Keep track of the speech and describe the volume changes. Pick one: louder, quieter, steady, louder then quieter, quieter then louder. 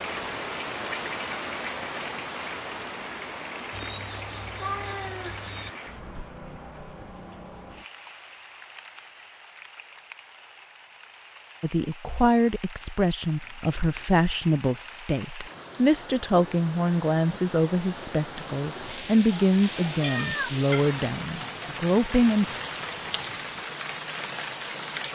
steady.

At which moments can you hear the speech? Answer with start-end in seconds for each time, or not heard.
11.6-22.6.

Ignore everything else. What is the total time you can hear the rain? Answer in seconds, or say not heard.
25 s.